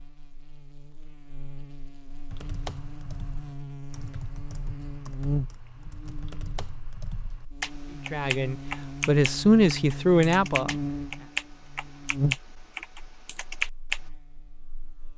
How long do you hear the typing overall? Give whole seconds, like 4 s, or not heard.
12 s.